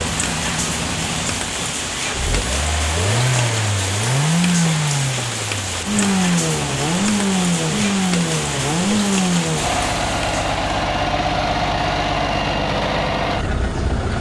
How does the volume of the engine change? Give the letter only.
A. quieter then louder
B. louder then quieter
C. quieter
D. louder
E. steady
D.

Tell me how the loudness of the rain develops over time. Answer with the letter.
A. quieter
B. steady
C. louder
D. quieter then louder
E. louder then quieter
B.